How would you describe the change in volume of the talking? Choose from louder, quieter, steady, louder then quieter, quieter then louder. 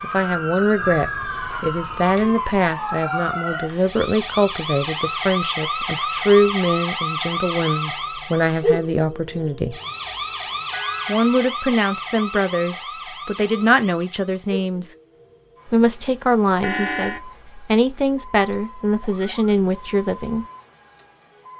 steady.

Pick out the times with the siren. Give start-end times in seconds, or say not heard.
0.0-21.5.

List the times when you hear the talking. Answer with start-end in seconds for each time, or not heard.
0.0-9.8, 11.1-14.9, 15.7-20.4.